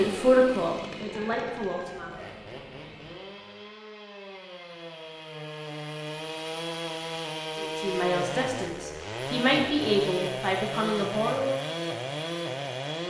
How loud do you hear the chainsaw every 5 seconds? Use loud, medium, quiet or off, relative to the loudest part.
medium, loud, loud.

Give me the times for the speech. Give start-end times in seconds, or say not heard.
0.0-2.1, 7.5-11.6.